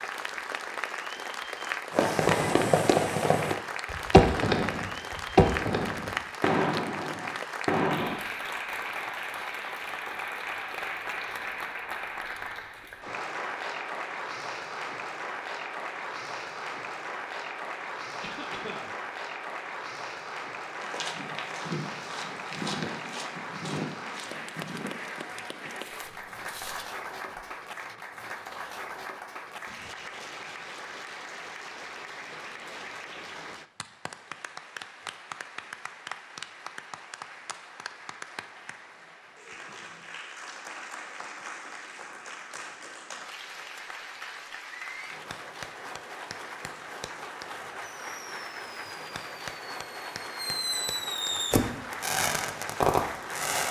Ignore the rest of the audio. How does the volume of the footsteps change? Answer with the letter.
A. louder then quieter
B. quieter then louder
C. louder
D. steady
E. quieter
E.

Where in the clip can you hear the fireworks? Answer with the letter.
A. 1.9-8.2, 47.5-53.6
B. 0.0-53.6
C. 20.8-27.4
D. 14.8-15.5
A.